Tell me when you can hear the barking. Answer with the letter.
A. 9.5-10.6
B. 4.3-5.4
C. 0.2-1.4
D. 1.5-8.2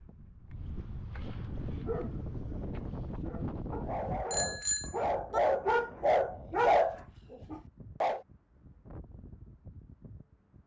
D.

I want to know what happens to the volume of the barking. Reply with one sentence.
The volume of the barking goes up.